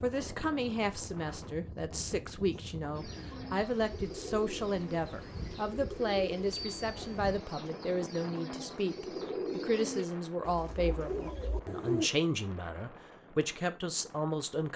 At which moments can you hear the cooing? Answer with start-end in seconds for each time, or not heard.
2.9-12.1.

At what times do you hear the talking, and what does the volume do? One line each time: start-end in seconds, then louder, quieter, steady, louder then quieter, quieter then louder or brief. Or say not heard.
0.0-14.7 steady.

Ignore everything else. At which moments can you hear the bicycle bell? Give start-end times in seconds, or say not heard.
6.5-7.2.